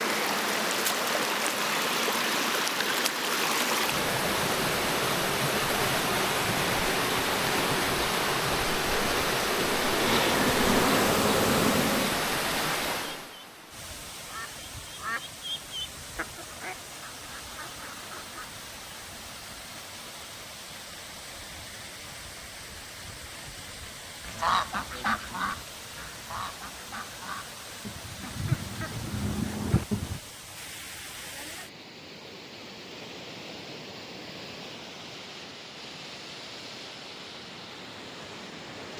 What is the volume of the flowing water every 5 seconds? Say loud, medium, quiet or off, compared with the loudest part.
loud, loud, loud, quiet, quiet, quiet, quiet, quiet.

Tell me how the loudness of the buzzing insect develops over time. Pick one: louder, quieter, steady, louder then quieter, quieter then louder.
louder.